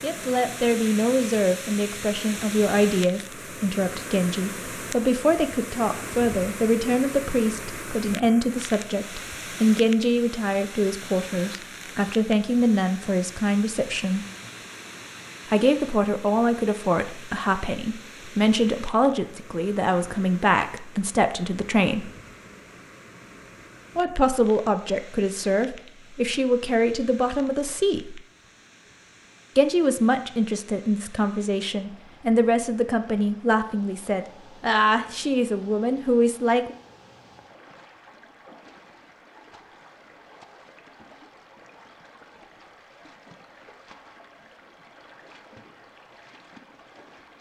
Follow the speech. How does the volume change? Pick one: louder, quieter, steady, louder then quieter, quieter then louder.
steady.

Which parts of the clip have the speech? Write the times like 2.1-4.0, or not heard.
0.0-14.2, 15.4-22.1, 23.9-28.2, 29.6-36.8.